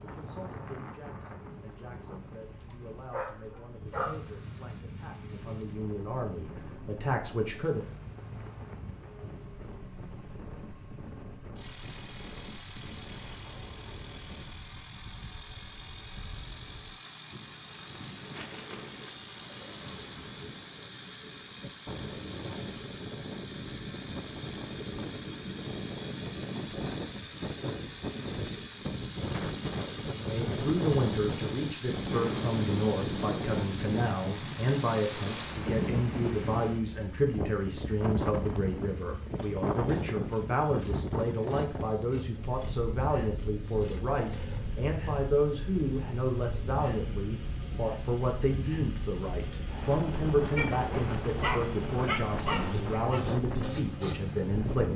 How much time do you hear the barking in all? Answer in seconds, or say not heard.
4 s.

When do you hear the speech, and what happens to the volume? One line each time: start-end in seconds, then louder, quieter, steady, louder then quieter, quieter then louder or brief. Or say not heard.
0.0-7.8 louder
30.1-54.9 steady.